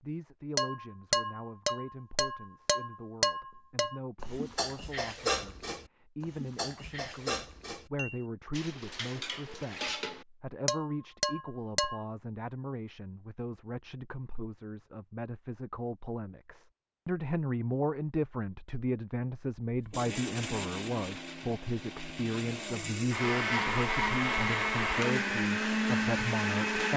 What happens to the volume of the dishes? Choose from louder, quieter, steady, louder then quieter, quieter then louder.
quieter then louder.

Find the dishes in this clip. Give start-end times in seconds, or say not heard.
0.6-12.1.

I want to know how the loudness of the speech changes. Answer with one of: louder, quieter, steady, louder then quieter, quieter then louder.
louder.